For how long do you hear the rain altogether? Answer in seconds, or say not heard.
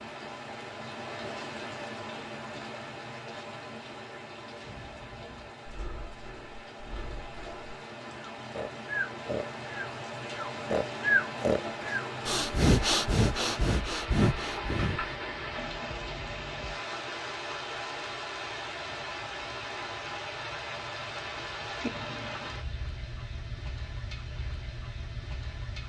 26 s.